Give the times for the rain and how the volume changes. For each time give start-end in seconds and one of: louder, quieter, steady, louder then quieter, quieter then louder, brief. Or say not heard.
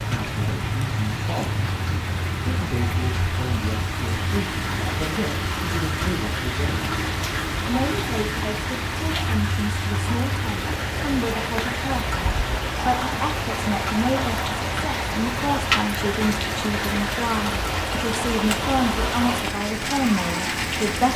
0.0-21.1 steady.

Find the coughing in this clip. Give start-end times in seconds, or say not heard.
not heard.